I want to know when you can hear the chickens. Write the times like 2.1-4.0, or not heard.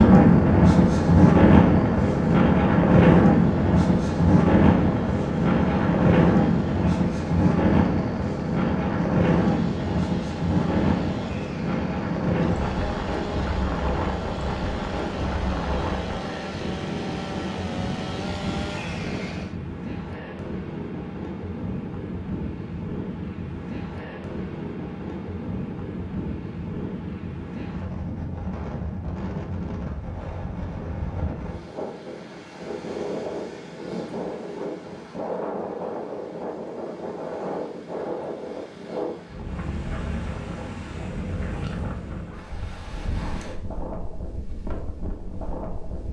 not heard.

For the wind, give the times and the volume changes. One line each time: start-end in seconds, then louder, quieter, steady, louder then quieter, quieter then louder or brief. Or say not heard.
0.0-46.0 quieter.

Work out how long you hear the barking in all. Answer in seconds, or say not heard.
not heard.